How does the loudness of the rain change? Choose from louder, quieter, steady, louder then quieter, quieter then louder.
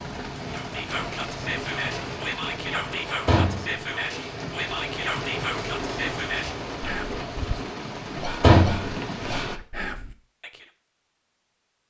steady.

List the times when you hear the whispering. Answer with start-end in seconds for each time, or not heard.
0.5-10.7.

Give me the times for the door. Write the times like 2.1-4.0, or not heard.
3.2-4.3, 8.4-9.4.